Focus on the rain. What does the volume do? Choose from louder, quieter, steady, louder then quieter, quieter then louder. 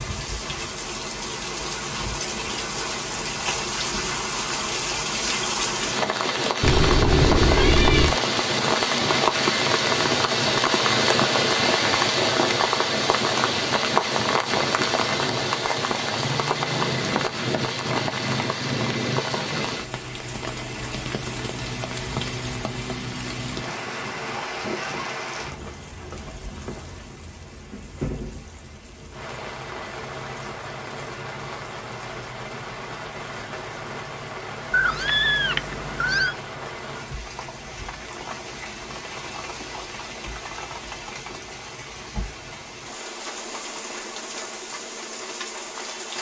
quieter.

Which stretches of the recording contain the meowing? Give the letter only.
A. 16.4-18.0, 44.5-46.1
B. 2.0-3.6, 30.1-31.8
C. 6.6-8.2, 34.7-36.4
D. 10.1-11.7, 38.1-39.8
C.